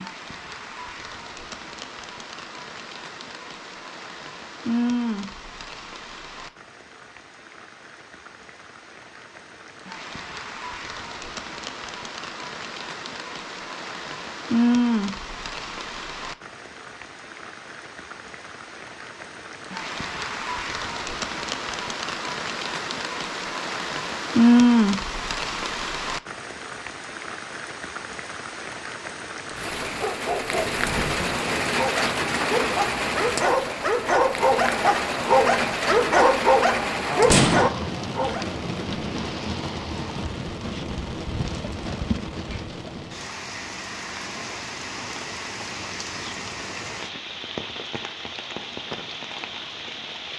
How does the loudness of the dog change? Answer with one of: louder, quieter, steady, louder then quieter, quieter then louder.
louder.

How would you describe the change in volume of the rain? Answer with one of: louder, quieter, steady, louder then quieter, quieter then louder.
louder then quieter.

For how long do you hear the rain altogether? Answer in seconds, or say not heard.
50 s.